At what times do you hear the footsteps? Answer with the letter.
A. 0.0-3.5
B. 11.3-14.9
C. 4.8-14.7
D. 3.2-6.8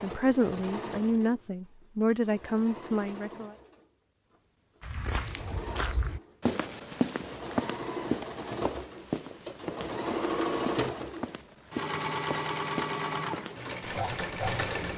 C.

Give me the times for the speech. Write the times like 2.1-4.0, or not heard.
0.0-3.5.